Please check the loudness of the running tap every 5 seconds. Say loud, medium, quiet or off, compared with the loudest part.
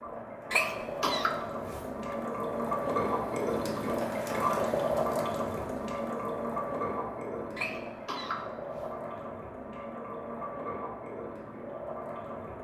loud, loud, medium.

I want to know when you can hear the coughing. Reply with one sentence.
The coughing can be heard from 0.5 to 2.1 s and from 7.5 to 9.2 s.